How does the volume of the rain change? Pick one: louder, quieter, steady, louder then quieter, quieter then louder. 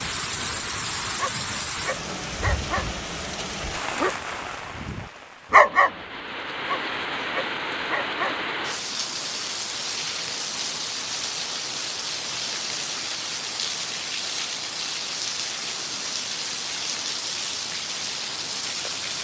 steady.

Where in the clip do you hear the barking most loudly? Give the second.
6 s.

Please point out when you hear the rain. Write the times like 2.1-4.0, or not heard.
0.0-19.1.